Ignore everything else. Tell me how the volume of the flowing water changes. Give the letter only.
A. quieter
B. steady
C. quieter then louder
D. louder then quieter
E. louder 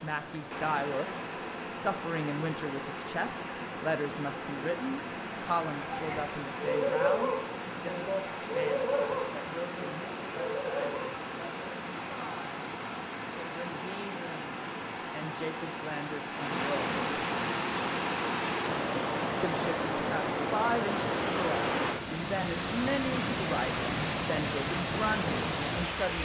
E.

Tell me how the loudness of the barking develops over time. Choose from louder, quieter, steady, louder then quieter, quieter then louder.
quieter.